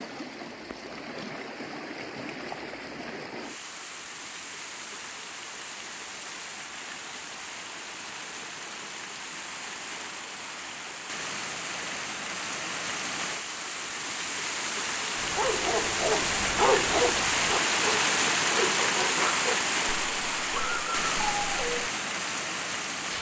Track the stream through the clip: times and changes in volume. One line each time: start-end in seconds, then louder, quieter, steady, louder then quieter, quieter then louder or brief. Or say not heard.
0.0-23.1 louder.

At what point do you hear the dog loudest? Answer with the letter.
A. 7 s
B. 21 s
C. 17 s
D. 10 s
C.